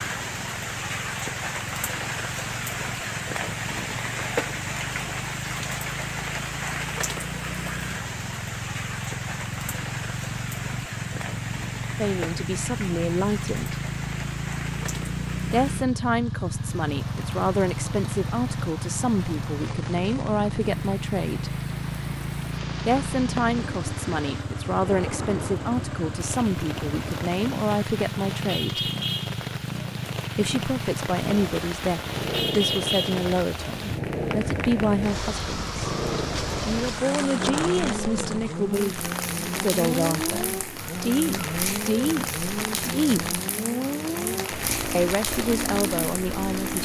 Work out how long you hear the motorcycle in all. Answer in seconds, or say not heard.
47 s.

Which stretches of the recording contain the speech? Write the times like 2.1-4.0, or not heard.
11.9-13.8, 15.5-21.6, 22.9-28.9, 30.4-35.9, 36.6-43.4, 44.9-46.8.